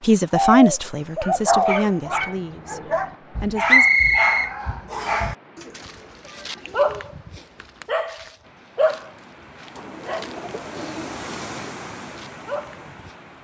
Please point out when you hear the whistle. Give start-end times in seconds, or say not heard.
3.6-5.3.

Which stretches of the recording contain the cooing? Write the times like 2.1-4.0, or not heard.
0.3-1.9, 5.5-7.0, 9.8-11.8.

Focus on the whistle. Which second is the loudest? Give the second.
4 s.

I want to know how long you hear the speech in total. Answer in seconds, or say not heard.
4 s.